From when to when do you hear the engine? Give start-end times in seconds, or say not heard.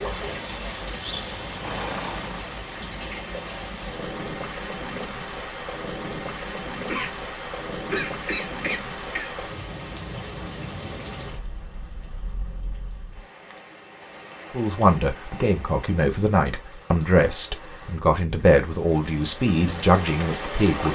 0.0-2.6.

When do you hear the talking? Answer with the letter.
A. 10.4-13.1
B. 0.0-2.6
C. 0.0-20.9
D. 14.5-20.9
D.